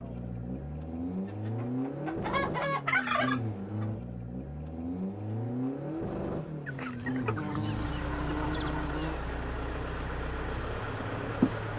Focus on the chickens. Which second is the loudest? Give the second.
3 s.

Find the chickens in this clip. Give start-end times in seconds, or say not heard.
1.2-3.9, 6.7-9.0.